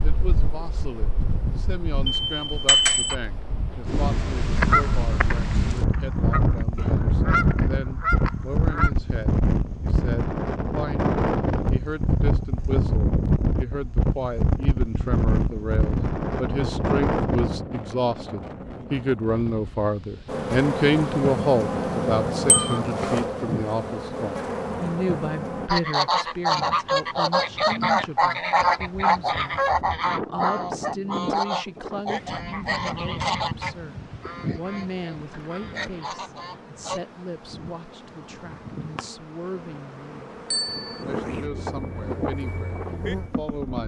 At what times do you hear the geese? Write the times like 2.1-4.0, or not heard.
4.5-8.9, 25.6-37.0.